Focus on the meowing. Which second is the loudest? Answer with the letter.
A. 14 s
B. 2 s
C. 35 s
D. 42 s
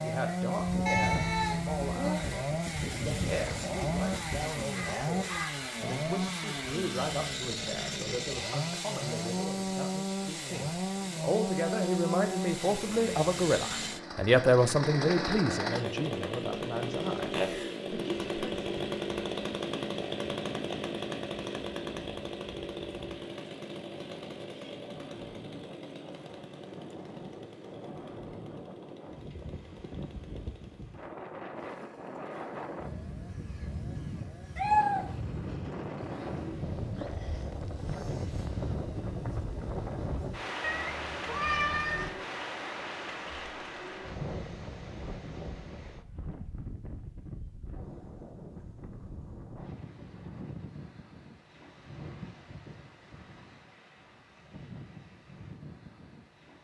C.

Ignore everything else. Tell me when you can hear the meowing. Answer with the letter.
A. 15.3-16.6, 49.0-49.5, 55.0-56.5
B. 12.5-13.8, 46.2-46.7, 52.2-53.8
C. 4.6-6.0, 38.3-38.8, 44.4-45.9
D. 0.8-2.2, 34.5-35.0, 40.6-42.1
D.